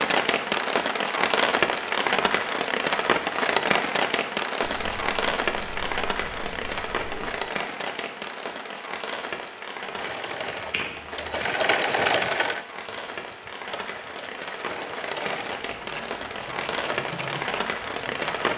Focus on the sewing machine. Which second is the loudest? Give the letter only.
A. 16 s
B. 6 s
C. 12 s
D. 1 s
C.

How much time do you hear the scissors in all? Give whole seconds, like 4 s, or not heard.
4 s.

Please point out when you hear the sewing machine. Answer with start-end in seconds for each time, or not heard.
9.9-18.5.